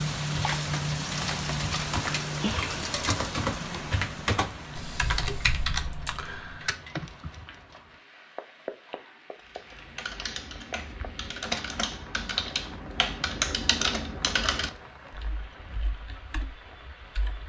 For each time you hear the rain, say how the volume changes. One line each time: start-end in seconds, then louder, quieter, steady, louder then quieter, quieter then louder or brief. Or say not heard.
0.0-17.4 quieter.